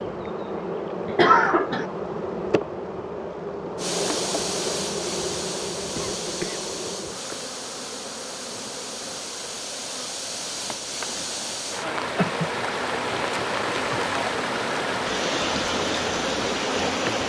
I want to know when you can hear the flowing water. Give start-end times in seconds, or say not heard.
3.8-17.2.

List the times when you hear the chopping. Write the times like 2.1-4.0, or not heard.
not heard.